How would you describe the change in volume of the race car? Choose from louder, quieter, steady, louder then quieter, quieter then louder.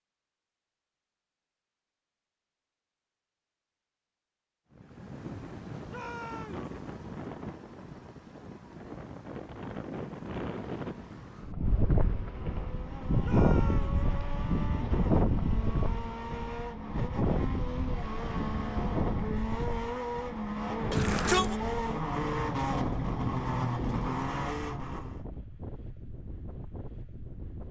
louder.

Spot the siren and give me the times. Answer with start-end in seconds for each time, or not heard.
not heard.